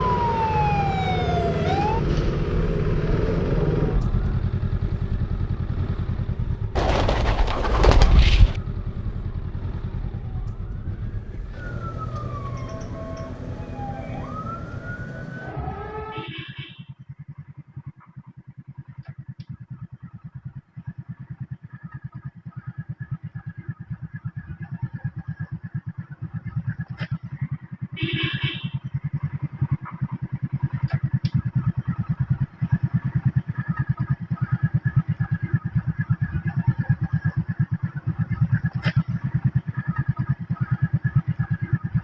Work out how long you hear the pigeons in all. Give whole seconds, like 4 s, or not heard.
2 s.